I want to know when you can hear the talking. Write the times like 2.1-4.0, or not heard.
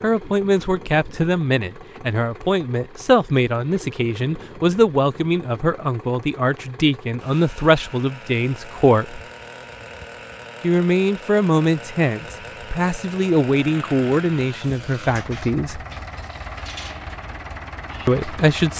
0.0-9.2, 10.6-15.8, 18.1-18.7.